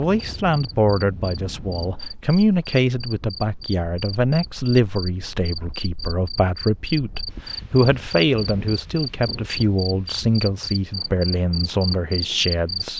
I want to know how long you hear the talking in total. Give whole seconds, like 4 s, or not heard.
13 s.